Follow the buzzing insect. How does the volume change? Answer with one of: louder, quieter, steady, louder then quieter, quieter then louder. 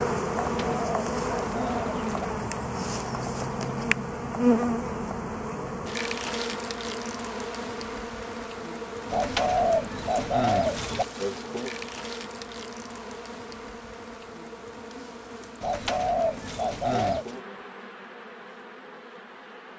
quieter.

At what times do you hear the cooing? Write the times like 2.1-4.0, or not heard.
0.4-2.3, 9.1-11.1, 15.6-17.2.